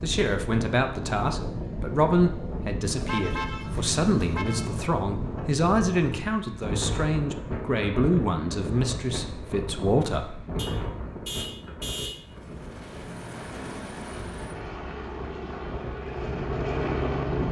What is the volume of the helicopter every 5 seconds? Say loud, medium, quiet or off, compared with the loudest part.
off, off, medium, loud.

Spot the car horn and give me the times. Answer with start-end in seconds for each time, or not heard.
2.9-4.8, 10.6-12.2.